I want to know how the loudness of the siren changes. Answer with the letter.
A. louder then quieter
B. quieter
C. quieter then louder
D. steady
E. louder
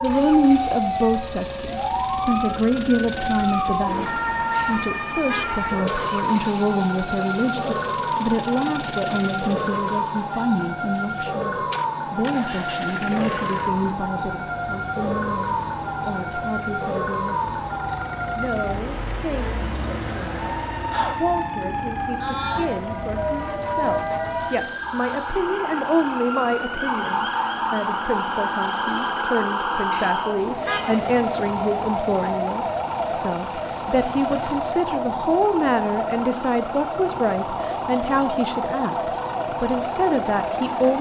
D.